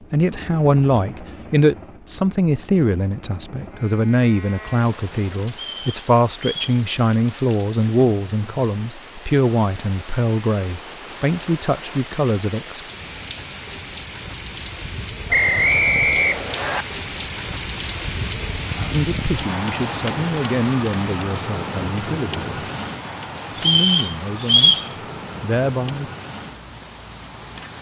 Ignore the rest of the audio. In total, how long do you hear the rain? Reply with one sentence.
You can hear the rain for 23 seconds altogether.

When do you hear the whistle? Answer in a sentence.
The whistle can be heard from 5.5 to 6.8 s, from 15.3 to 16.9 s and from 23.6 to 24.9 s.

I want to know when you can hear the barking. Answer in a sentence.
You can't hear the barking here.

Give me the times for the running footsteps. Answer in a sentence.
The running footsteps can't be heard in this clip.